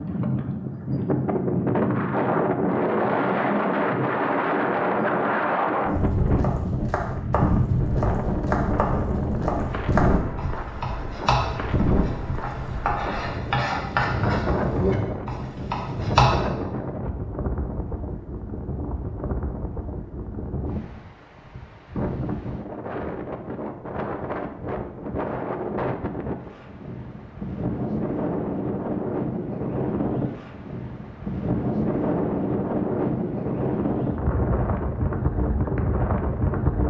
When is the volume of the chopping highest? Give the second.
16 s.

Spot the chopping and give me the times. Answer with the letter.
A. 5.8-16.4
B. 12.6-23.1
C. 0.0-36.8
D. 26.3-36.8
A.